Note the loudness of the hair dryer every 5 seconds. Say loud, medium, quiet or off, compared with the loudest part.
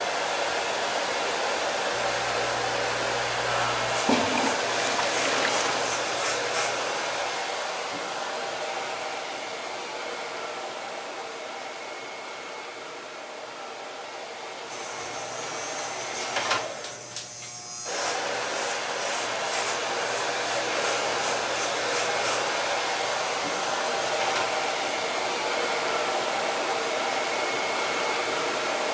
loud, loud, medium, medium, loud, loud.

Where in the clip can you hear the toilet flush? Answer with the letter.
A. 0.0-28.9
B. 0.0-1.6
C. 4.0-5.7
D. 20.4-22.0
C.